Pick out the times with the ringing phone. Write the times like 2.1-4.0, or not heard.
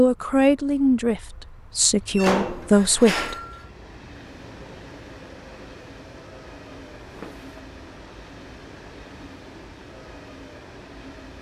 not heard.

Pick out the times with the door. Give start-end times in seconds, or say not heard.
2.0-3.6, 6.7-7.6.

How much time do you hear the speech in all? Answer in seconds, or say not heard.
3 s.